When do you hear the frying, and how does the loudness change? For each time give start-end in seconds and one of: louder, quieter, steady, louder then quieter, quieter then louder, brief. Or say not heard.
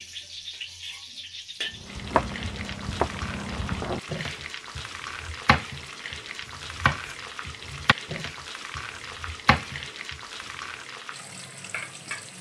0.0-12.3 steady.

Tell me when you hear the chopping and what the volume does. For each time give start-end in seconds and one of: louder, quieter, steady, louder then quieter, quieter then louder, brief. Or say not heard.
1.8-10.2 steady.